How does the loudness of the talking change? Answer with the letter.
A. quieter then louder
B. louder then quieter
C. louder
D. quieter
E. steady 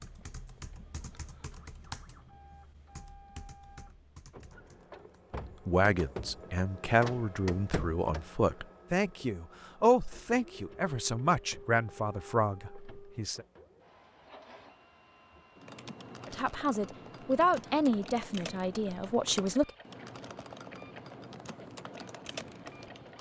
E.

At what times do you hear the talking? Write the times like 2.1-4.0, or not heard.
5.7-13.4, 16.2-19.7.